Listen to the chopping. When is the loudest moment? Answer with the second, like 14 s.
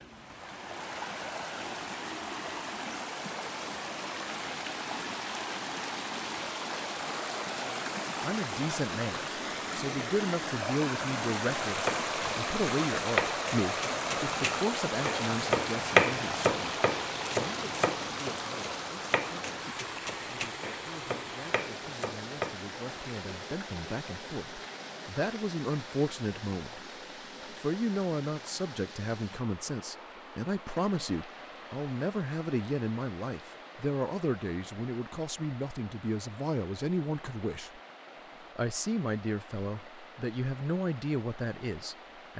16 s.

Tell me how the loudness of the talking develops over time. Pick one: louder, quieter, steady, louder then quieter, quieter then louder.
quieter then louder.